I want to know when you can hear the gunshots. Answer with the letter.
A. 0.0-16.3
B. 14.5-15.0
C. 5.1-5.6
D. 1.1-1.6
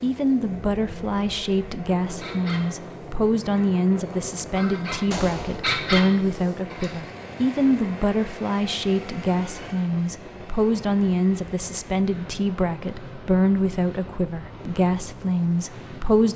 C.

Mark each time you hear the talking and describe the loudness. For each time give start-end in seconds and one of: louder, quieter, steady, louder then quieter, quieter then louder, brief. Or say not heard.
0.0-16.3 steady.